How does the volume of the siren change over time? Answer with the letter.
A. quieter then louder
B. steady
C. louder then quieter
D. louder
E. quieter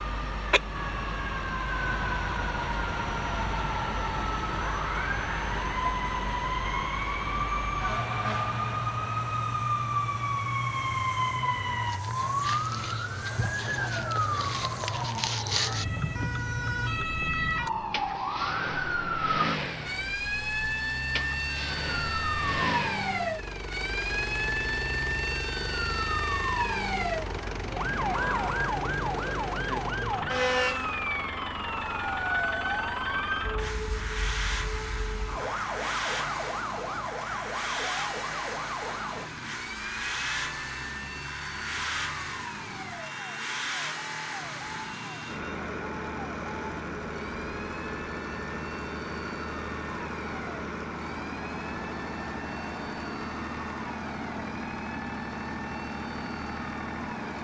E.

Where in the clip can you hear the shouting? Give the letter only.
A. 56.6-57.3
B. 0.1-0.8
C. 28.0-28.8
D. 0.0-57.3
C.